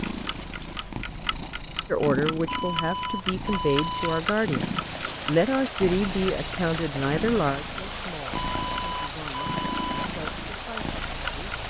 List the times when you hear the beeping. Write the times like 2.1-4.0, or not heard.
2.5-4.2, 8.3-10.1.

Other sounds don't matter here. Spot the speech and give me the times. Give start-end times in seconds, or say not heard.
1.9-11.4.